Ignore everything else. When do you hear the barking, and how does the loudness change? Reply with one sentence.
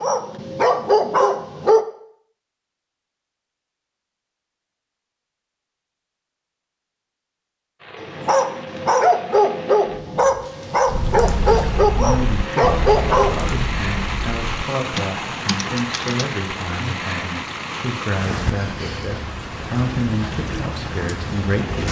You can hear the barking briefly from 0.0 to 1.9 s; and from 8.0 to 13.4 s, at a steady volume.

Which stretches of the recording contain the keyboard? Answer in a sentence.
The keyboard can be heard from 10.8 to 16.4 s.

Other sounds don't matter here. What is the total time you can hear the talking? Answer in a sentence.
You can hear the talking for 10 seconds altogether.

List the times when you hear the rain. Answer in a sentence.
You can hear the rain from 7.8 to 21.8 s.